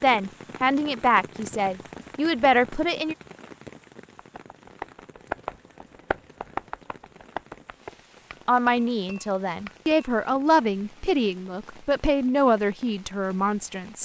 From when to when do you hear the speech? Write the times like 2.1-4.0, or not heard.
0.0-3.1, 8.4-14.0.